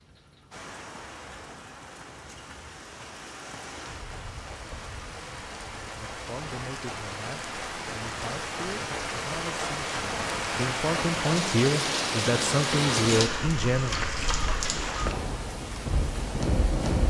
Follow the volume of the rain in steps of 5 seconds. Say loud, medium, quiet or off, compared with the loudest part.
quiet, medium, loud, loud.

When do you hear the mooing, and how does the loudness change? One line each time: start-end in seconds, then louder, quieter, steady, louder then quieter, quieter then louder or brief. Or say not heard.
not heard.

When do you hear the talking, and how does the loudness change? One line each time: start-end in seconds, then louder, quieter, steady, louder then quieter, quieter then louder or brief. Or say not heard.
5.8-13.9 louder.